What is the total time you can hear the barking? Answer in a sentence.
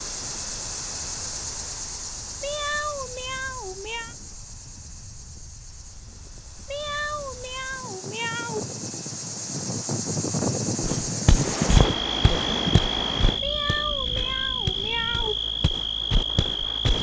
You can't hear the barking here.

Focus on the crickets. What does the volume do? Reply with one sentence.
The loudness of the crickets goes down, then up.